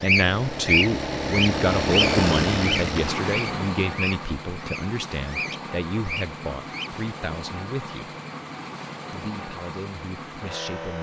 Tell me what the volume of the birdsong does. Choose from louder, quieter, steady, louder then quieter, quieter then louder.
quieter.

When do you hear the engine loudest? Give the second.
2 s.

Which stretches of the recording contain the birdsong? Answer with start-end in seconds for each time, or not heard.
0.0-6.9.